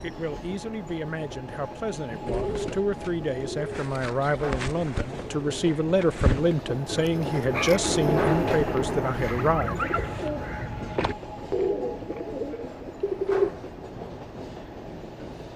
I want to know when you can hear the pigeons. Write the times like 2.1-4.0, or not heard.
2.2-13.5.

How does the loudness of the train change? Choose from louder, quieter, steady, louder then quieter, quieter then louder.
louder then quieter.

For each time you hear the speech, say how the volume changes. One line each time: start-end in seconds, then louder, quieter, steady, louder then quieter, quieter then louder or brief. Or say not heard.
0.0-10.3 louder.